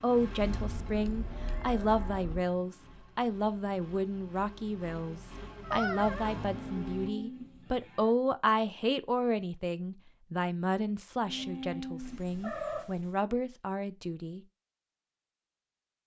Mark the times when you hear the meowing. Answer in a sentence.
You can hear the meowing from 0.6 to 2.5 s, from 5.5 to 6.4 s and from 12.0 to 13.2 s.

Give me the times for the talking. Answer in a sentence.
You can hear the talking from 0.0 to 14.4 s.